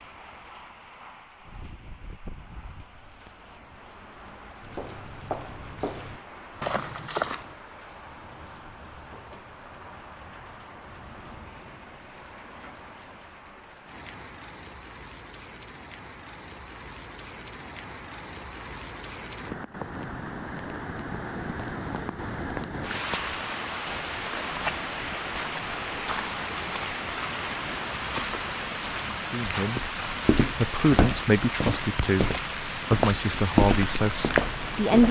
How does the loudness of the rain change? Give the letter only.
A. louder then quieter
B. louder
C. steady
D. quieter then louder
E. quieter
B.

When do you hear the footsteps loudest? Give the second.
34 s.